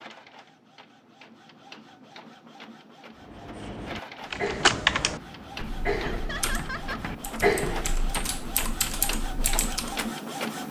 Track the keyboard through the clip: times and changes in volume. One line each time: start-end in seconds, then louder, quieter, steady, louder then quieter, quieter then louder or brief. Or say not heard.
4.3-10.1 quieter then louder.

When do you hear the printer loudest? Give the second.
10 s.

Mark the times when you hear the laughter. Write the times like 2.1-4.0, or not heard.
6.0-7.2.